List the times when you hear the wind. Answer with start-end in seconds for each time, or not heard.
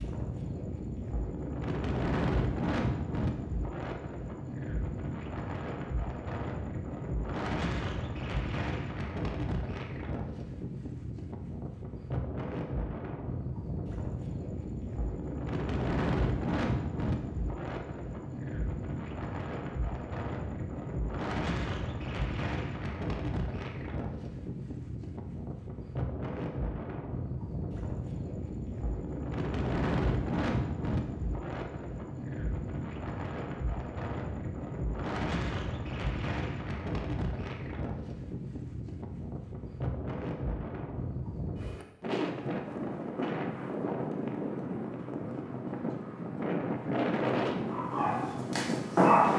0.0-49.3.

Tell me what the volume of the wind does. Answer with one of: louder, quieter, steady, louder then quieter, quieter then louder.
steady.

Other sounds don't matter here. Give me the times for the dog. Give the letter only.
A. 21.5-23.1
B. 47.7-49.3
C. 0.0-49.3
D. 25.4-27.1
B.